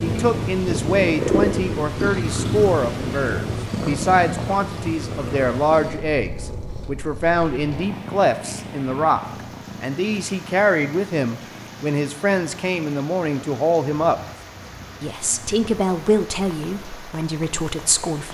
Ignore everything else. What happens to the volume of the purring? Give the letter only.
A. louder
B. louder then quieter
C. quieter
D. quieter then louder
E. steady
C.